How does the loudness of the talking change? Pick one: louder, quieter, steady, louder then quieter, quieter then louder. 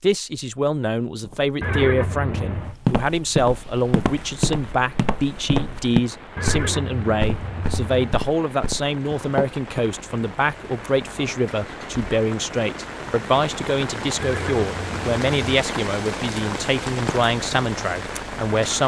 steady.